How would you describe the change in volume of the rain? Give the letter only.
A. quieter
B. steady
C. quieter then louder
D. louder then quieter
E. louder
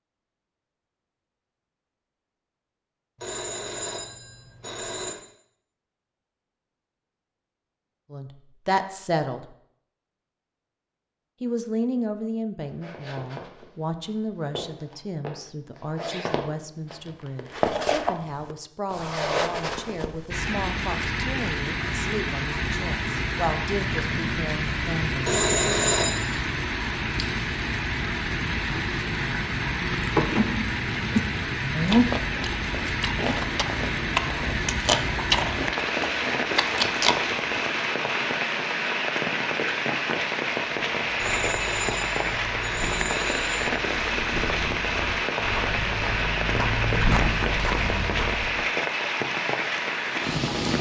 B.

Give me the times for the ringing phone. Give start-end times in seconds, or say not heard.
3.2-5.2, 25.2-26.3, 41.1-43.5.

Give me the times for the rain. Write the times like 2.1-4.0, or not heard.
20.3-50.7.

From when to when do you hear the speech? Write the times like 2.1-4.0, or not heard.
8.1-9.5, 11.4-25.2.